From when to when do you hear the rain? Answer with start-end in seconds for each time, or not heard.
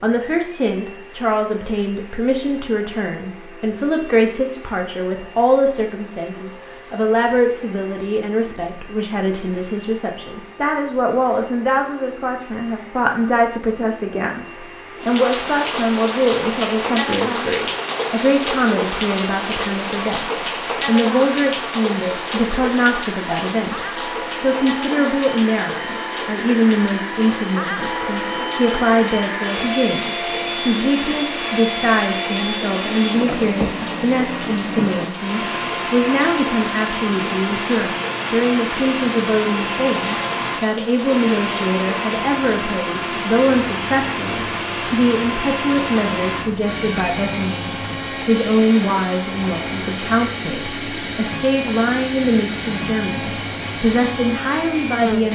14.9-55.2.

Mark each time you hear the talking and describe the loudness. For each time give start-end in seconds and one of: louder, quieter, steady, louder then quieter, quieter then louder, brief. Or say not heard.
0.0-55.2 steady.